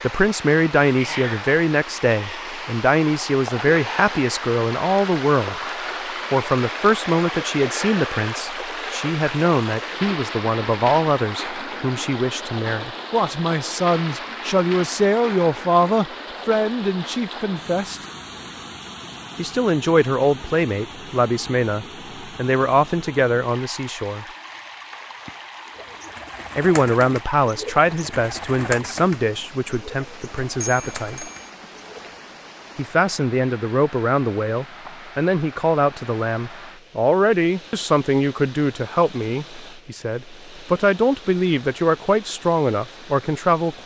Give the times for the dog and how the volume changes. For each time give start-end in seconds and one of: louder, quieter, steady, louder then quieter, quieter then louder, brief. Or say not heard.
not heard.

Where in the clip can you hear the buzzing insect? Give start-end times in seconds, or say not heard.
not heard.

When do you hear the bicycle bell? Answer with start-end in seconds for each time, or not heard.
30.6-31.5.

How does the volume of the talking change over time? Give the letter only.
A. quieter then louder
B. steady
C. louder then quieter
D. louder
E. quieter
B.